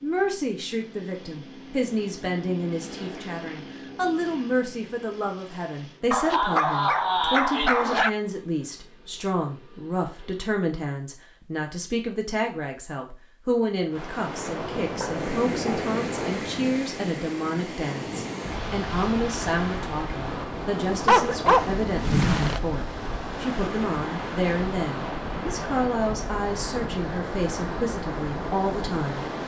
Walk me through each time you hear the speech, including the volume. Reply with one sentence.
The speech can be heard from 0.0 to 29.2 s, at a steady volume.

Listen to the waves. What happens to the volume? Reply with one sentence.
The volume of the waves stays about the same.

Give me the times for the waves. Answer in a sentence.
You can hear the waves from 13.9 to 29.4 s.